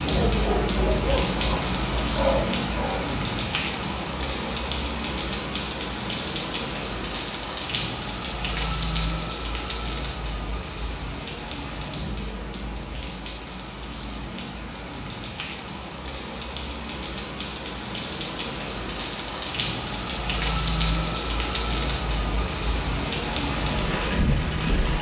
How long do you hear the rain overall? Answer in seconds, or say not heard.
25 s.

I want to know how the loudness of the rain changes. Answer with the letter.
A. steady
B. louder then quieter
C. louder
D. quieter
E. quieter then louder
E.